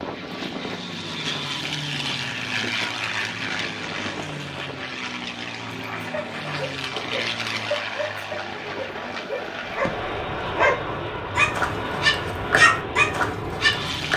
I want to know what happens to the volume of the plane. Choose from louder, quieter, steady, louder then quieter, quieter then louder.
steady.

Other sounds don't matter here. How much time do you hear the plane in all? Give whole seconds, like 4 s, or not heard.
14 s.